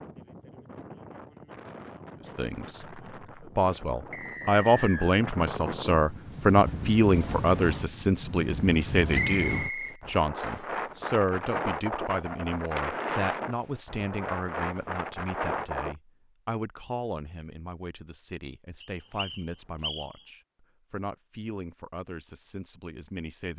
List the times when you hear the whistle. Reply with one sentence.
You can hear the whistle from 4.1 to 5.2 s, from 9.1 to 10.6 s and from 18.8 to 20.1 s.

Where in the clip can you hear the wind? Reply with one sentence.
The wind can be heard from 0.0 to 15.9 s.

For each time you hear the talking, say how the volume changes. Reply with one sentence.
You can hear the talking from 2.2 to 23.5 s, getting quieter.